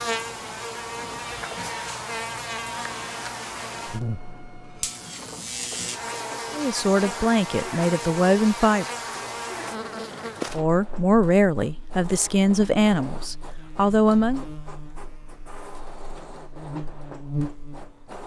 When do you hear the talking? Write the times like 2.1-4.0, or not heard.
6.5-8.8, 10.5-14.4.